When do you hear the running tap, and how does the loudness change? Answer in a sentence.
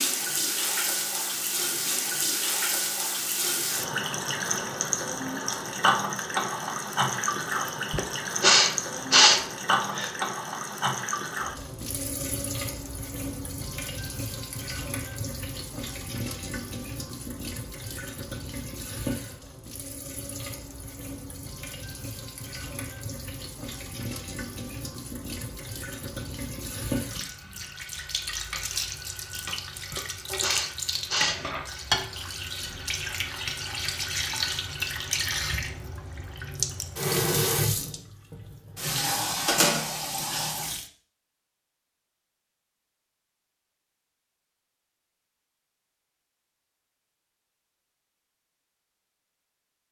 The running tap can be heard from 0.0 to 40.9 s, getting quieter then louder.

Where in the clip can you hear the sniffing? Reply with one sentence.
You can hear the sniffing from 7.9 to 10.1 s and from 29.9 to 31.4 s.